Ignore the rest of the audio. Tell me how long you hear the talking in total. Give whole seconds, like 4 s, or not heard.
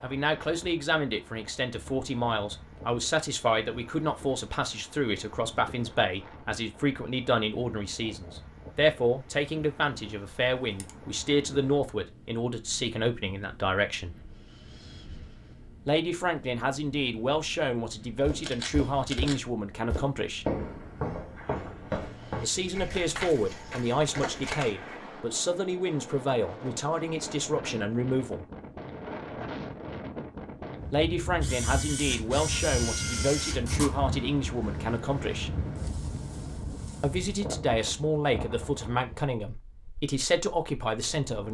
34 s.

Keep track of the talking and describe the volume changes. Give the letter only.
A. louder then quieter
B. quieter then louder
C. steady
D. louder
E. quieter
C.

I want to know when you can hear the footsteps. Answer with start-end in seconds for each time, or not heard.
18.2-24.9.